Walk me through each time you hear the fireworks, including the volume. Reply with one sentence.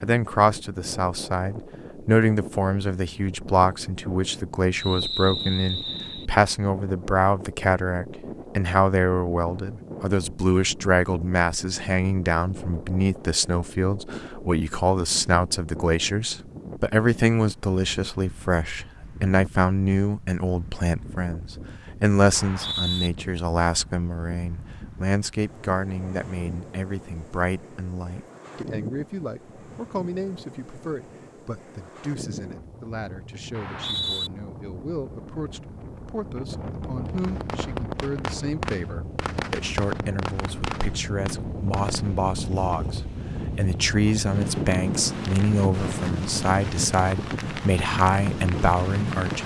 You can hear the fireworks from 37.0 to 43.0 s, getting quieter.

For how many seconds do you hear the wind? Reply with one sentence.
The wind can be heard for 49 seconds in total.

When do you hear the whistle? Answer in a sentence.
The whistle can be heard from 4.8 to 6.3 s, from 22.3 to 23.1 s and from 33.5 to 34.3 s.